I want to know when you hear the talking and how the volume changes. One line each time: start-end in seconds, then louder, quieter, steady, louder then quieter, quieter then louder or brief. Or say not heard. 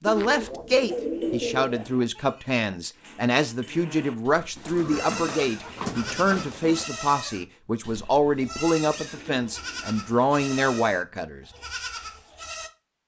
0.0-11.4 steady.